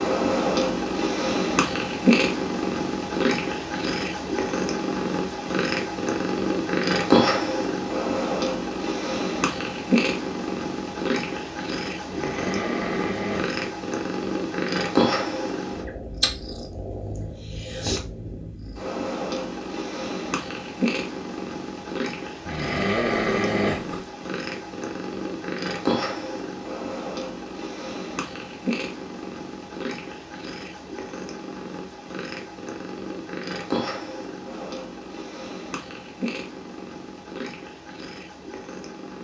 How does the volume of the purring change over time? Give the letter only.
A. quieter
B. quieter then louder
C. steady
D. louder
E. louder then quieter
A.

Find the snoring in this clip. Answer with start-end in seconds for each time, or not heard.
12.1-13.6, 22.4-24.1.